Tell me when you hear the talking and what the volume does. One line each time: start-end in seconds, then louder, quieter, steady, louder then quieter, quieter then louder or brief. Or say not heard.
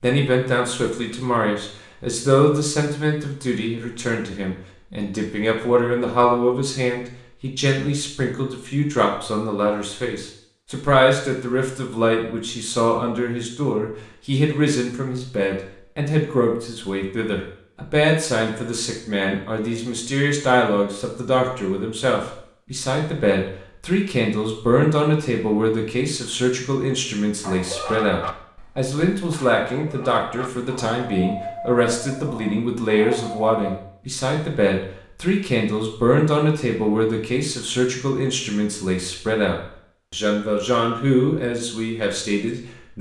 0.0-42.9 steady.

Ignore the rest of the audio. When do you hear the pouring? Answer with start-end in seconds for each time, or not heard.
not heard.